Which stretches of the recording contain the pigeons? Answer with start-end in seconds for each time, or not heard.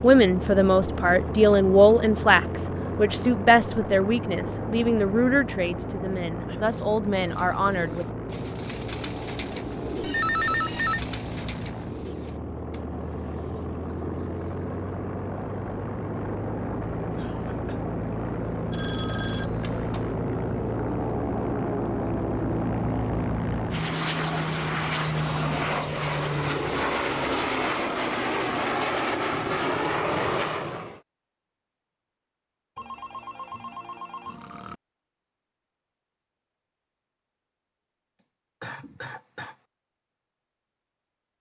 7.2-14.7.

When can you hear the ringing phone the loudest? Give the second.
10 s.